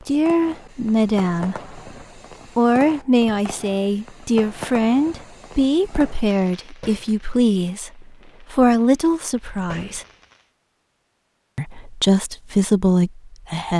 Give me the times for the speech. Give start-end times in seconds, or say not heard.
0.1-1.8, 2.5-10.1, 11.6-13.7.